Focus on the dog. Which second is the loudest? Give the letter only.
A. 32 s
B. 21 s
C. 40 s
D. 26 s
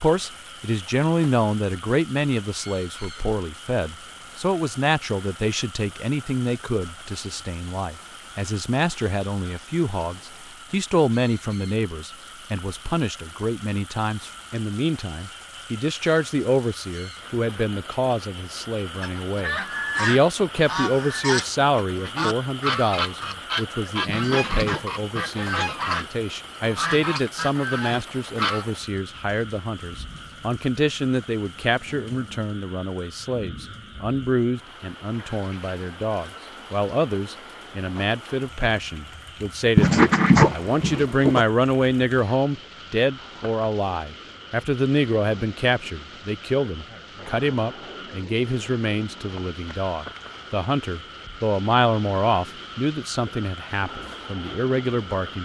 C.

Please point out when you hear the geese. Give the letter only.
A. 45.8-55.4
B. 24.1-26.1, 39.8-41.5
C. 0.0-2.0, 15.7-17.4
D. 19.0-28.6
D.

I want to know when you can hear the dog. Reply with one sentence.
The dog can be heard from 24.1 to 26.1 s and from 39.8 to 41.5 s.